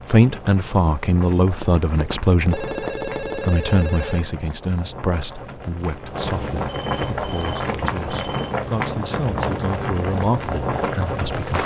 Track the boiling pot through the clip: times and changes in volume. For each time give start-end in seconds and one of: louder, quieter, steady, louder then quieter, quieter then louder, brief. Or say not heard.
0.0-11.6 louder.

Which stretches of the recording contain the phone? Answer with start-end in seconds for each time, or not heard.
2.5-4.3, 6.7-8.6.